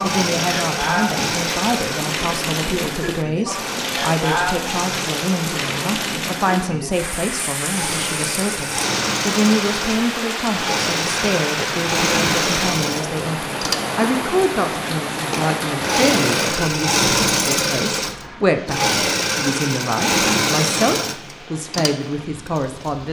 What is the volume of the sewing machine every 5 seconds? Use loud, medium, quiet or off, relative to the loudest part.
medium, medium, loud, loud, loud.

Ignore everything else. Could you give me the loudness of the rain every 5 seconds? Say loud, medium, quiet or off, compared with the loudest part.
loud, loud, loud, loud, quiet.